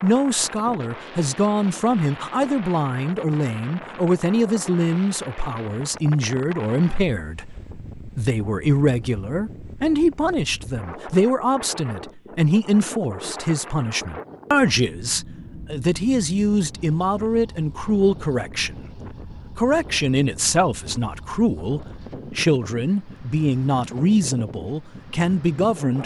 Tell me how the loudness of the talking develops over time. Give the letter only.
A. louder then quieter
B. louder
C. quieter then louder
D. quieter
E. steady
E.